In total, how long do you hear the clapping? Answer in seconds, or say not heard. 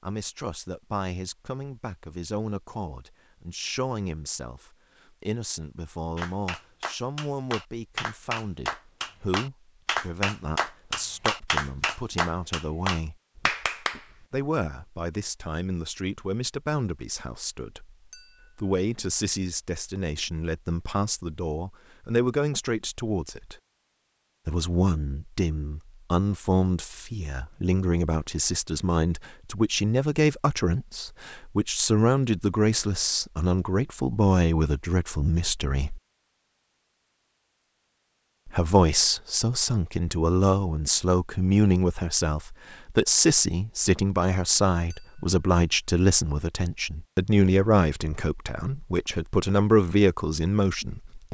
8 s.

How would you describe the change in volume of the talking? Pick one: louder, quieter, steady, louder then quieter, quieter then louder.
louder.